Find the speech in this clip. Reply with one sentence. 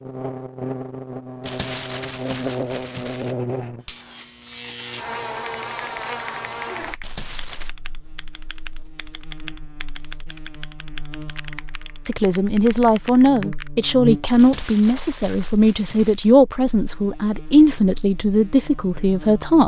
You can hear the speech from 12.1 to 19.6 s.